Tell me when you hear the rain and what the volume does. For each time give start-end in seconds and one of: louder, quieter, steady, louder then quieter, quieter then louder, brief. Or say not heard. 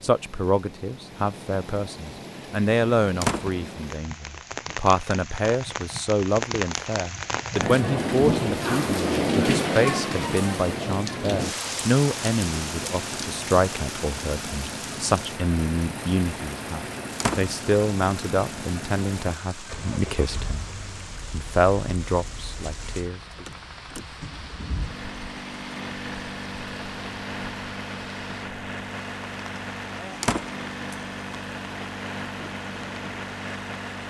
0.0-34.0 louder then quieter.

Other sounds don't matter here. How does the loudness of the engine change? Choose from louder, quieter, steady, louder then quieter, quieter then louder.
quieter then louder.